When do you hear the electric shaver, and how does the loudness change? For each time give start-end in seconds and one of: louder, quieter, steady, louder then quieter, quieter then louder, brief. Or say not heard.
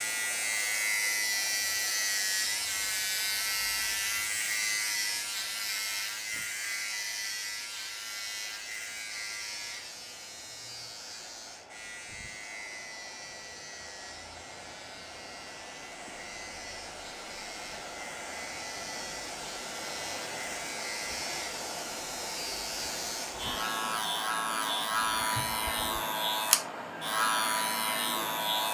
0.0-28.6 quieter then louder.